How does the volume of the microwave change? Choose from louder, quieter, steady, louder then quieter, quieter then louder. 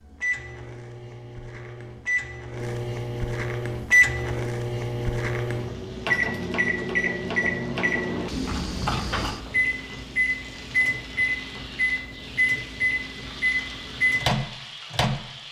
louder.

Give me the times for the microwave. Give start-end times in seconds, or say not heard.
0.0-15.2.